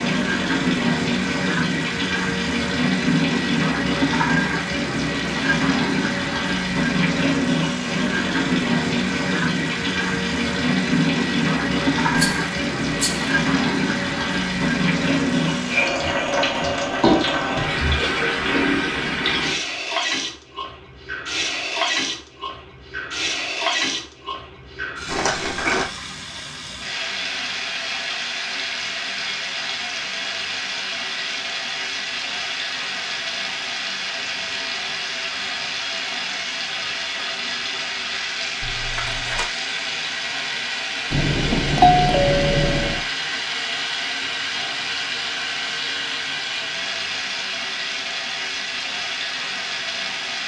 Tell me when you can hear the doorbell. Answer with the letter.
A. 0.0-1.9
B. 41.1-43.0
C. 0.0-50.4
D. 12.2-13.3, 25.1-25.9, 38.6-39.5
B.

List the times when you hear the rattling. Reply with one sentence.
The rattling can be heard from 12.2 to 13.3 s, from 25.1 to 25.9 s and from 38.6 to 39.5 s.